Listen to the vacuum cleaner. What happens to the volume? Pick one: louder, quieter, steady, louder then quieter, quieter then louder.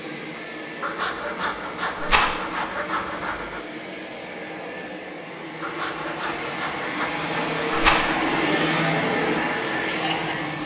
louder.